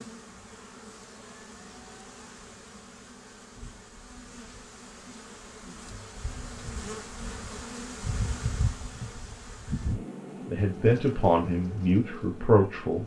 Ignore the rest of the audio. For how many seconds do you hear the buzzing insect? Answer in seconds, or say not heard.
13 s.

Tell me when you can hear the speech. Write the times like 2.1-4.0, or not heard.
10.4-13.0.